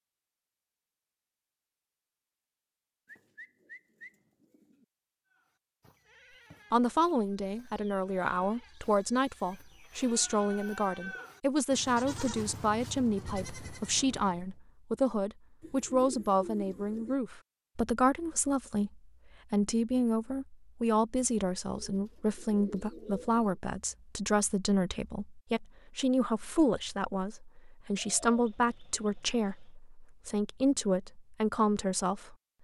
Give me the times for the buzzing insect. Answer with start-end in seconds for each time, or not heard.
not heard.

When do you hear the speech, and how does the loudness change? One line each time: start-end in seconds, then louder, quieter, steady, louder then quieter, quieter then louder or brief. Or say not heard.
6.7-32.4 steady.